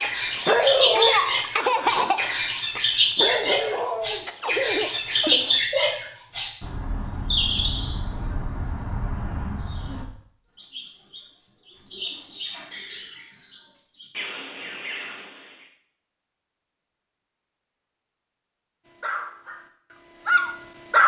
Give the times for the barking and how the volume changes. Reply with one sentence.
The barking can be heard from 0.0 to 6.0 s, getting quieter; and briefly from 19.0 to 21.0 s.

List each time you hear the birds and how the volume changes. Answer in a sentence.
You can hear the birds from 0.0 to 15.7 s, getting quieter.